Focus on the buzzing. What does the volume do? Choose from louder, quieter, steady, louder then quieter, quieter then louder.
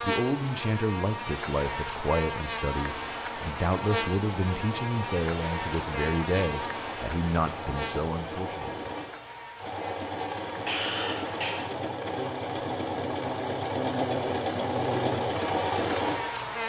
quieter then louder.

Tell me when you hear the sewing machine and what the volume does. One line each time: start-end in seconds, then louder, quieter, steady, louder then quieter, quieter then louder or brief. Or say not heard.
2.9-16.5 louder.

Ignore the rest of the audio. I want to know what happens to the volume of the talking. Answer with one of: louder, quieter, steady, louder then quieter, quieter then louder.
steady.